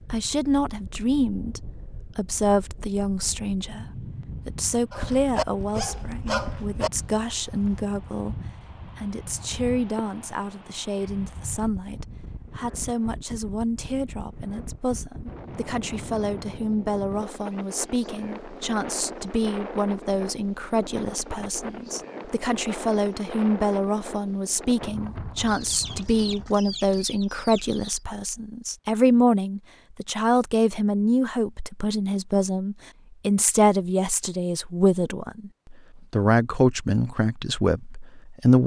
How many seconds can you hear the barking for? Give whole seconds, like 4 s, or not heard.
3 s.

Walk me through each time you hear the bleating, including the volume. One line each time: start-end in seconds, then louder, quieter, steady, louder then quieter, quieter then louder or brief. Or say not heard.
not heard.